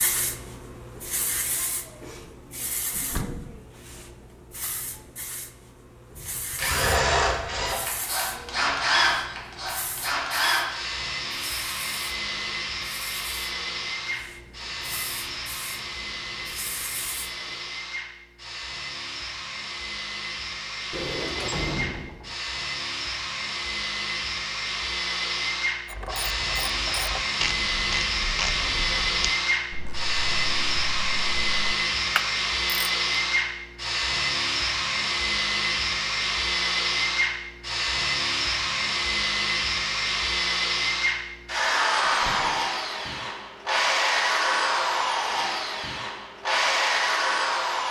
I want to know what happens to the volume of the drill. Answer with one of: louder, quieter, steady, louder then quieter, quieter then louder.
quieter then louder.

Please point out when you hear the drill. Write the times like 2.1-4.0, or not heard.
6.2-47.8.